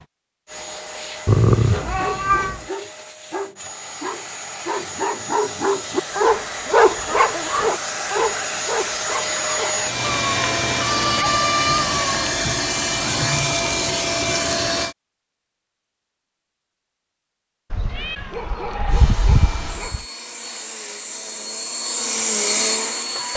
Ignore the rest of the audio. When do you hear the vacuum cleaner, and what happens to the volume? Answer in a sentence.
You can hear the vacuum cleaner from 0.0 to 14.9 s, getting louder; and from 18.9 to 23.3 s, getting louder.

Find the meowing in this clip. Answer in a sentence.
You can hear the meowing from 1.2 to 2.6 s, from 10.0 to 12.4 s and from 17.7 to 20.1 s.